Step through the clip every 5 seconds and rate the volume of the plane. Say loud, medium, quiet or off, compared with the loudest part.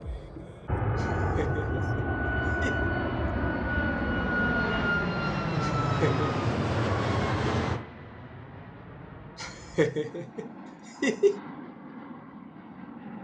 loud, loud, quiet.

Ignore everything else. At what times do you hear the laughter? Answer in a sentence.
You can hear the laughter from 0.9 to 2.9 s, from 5.6 to 6.2 s and from 9.3 to 11.4 s.